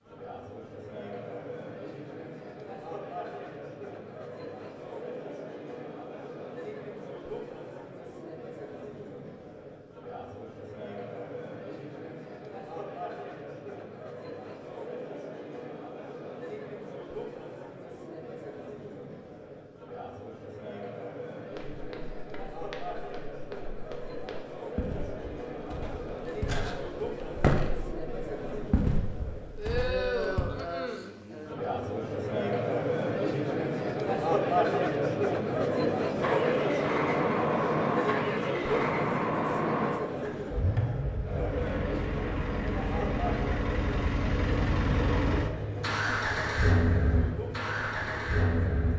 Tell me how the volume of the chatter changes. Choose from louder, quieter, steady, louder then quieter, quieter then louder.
louder then quieter.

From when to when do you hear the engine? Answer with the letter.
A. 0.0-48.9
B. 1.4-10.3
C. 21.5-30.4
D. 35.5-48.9
D.